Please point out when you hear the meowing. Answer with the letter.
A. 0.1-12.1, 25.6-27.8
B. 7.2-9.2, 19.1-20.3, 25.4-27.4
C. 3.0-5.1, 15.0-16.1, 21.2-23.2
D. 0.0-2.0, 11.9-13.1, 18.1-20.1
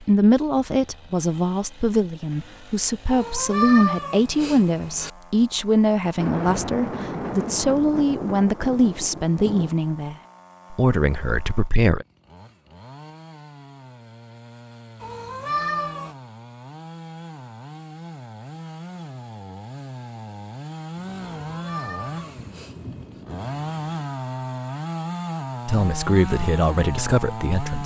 C.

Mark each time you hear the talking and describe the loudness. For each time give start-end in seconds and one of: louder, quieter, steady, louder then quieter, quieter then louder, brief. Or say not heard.
0.1-12.1 steady
25.6-27.8 brief.